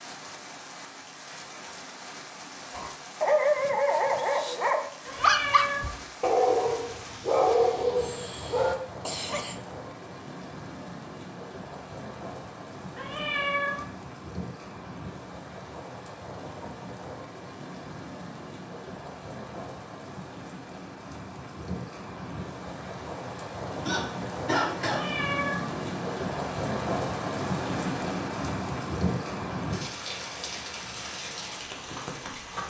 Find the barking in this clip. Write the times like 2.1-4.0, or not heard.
2.7-8.8.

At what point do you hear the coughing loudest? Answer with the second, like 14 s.
25 s.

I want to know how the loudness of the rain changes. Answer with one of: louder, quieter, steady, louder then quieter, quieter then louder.
louder.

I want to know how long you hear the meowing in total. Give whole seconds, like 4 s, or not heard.
3 s.